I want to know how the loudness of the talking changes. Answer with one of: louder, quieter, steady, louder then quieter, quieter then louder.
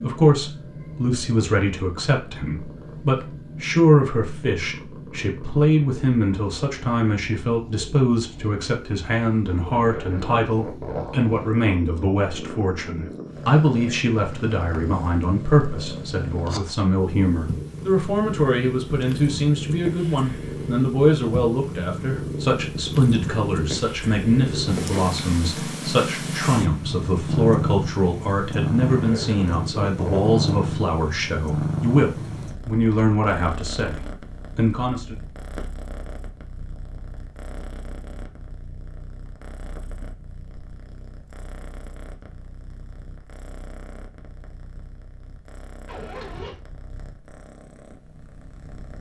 steady.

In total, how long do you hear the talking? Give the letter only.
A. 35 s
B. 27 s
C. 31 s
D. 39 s
A.